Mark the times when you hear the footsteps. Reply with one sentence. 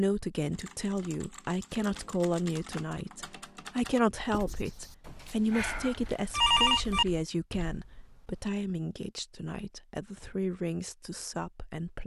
You can't hear the footsteps here.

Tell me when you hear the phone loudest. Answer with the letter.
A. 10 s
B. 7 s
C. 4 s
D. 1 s
B.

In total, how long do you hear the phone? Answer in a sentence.
The phone can be heard for 2 seconds in total.